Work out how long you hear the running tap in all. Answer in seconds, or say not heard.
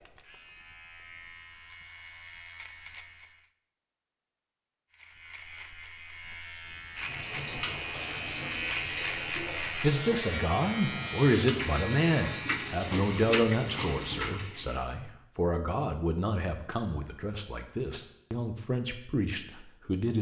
8 s.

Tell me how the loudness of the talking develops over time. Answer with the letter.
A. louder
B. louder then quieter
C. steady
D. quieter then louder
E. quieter
E.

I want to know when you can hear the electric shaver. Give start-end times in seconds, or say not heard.
0.0-3.5, 4.9-12.8.